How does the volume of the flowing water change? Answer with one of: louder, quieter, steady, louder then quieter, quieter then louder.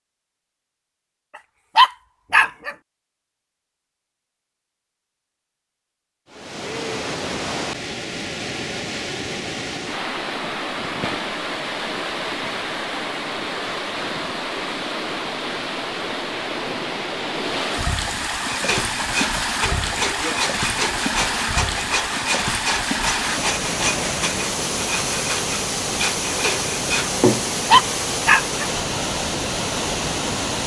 steady.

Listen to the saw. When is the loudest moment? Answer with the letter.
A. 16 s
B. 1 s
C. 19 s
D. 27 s
D.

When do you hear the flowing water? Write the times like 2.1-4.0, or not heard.
6.3-30.6.